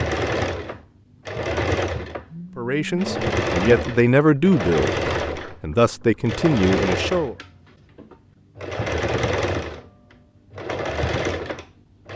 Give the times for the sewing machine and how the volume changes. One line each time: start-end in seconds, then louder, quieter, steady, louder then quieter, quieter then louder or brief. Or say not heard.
0.0-12.1 steady.